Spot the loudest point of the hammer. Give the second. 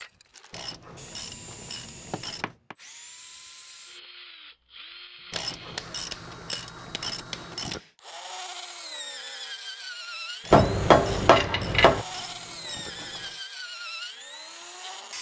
11 s.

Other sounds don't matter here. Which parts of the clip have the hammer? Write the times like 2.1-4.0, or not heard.
0.9-2.8, 5.3-7.8, 10.5-12.1.